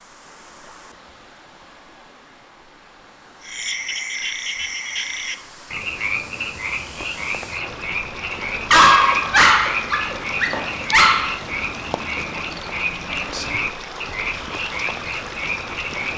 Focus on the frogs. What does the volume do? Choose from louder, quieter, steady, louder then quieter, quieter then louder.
steady.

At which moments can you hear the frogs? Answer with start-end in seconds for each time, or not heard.
3.4-16.1.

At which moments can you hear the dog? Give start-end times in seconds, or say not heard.
8.7-11.3.